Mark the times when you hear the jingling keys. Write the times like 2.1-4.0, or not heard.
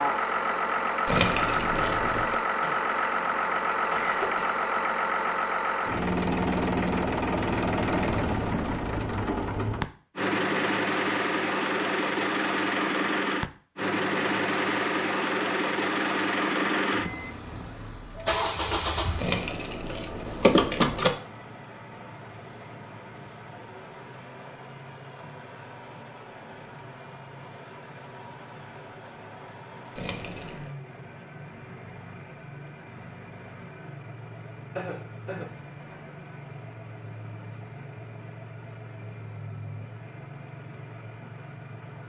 1.1-2.4, 19.1-21.1, 29.9-30.7.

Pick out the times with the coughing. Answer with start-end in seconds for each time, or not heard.
2.6-4.5, 18.1-18.9, 34.8-35.5.